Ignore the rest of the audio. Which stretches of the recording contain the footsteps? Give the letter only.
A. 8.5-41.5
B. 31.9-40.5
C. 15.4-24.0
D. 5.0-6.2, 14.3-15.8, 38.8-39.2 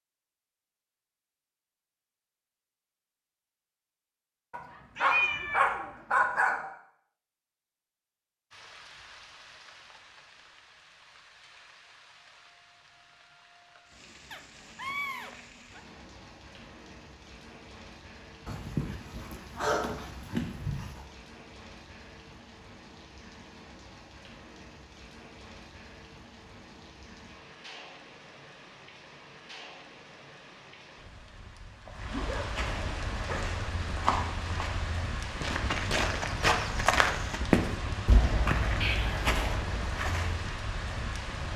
B.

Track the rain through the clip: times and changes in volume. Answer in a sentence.
You can hear the rain from 8.5 to 41.5 s, getting louder.